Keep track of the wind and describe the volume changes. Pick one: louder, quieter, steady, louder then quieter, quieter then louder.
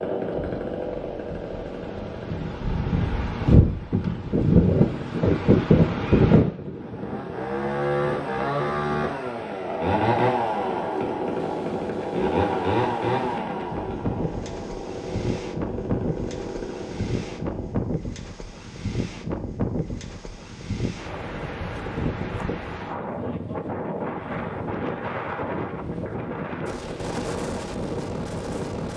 quieter.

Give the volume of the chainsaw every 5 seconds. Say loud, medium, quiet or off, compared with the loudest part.
medium, loud, loud, medium, off, off.